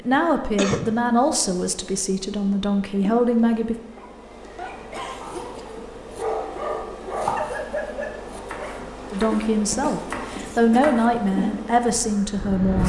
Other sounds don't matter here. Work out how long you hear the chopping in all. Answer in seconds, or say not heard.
6 s.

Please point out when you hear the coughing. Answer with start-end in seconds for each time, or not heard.
0.1-0.9, 4.7-5.7, 9.3-10.8.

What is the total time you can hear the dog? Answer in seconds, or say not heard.
5 s.